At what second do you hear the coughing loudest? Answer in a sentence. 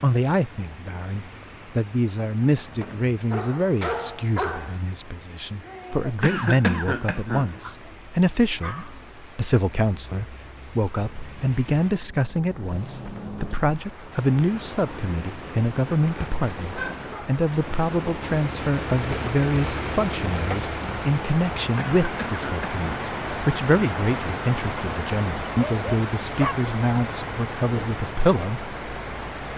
The volume of the coughing peaks at 7 seconds.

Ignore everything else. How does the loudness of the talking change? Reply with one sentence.
The loudness of the talking stays about the same.